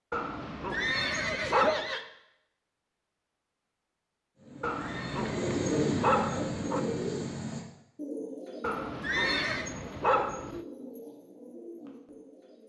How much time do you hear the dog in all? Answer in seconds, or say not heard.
6 s.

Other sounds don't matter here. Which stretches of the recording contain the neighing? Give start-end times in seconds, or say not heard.
0.7-2.0, 4.8-6.5, 9.0-9.7.